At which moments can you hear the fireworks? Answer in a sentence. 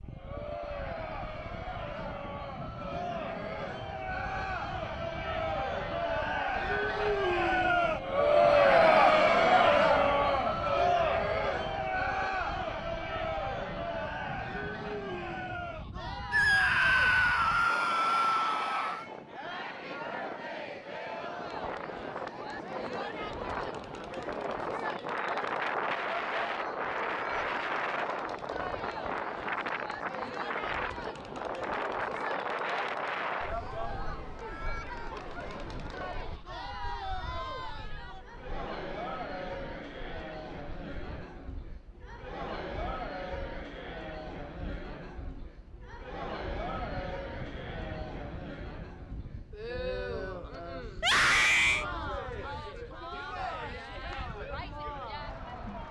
You can't hear the fireworks here.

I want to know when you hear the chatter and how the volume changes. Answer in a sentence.
The chatter can be heard from 0.1 to 55.8 s, getting quieter.